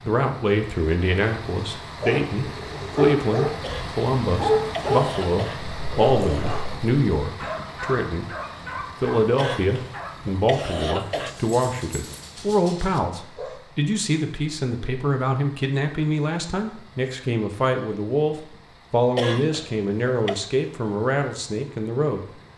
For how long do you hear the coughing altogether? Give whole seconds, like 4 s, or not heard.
5 s.